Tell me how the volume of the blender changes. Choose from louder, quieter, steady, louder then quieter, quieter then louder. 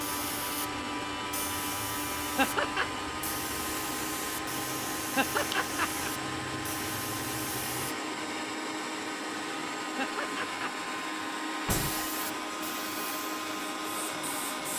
steady.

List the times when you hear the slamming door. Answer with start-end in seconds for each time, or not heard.
11.7-12.1.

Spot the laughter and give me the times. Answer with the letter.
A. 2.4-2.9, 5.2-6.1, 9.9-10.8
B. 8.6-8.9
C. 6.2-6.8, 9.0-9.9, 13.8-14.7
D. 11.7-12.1
A.